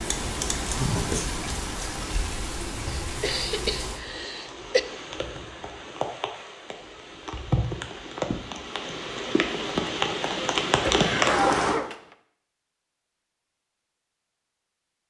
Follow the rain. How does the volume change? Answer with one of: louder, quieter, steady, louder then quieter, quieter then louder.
quieter then louder.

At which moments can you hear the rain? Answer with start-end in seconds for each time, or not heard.
0.0-11.8.